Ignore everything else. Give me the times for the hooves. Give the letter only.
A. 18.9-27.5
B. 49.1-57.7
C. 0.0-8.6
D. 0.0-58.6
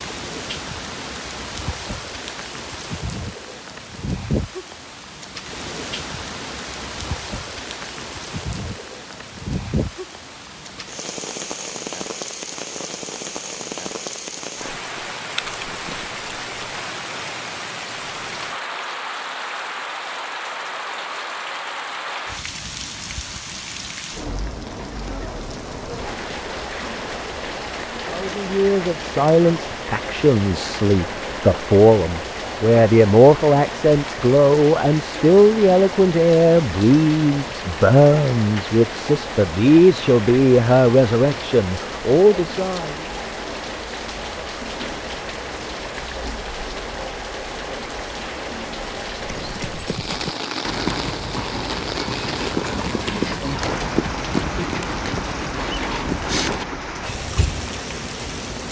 B.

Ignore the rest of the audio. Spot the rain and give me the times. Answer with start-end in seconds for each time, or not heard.
0.0-58.6.